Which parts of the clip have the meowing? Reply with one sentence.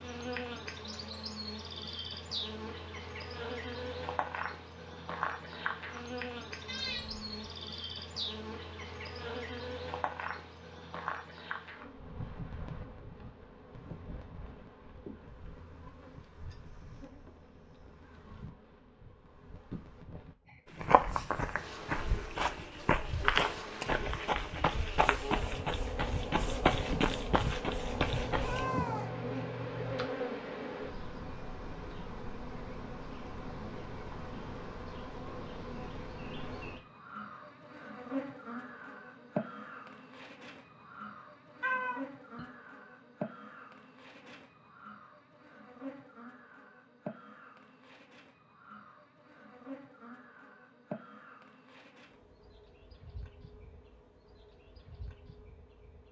You can hear the meowing from 6.7 to 7.2 s, from 28.2 to 30.1 s and from 41.6 to 42.4 s.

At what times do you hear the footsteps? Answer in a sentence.
You can hear the footsteps from 20.8 to 28.6 s.